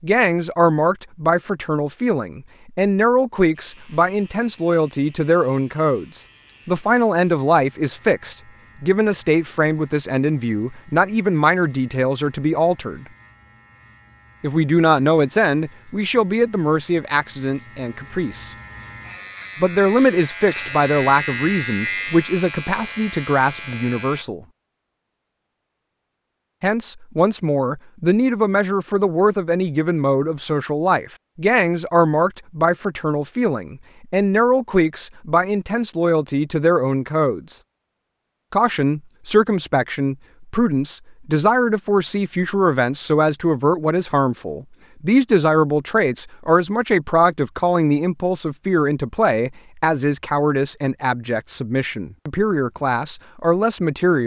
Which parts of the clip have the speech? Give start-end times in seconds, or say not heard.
0.0-13.1, 14.4-18.5, 19.6-24.4, 26.6-37.5, 38.5-54.2.